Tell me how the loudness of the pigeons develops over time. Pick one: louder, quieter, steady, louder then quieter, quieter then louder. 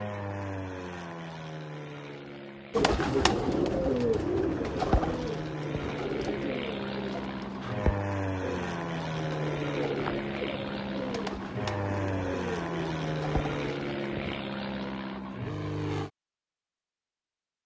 quieter.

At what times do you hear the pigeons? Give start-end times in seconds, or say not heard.
2.7-14.4.